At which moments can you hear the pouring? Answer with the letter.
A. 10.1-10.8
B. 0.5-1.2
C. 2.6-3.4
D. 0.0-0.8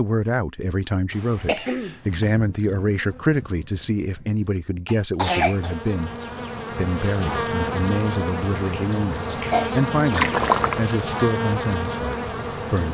A.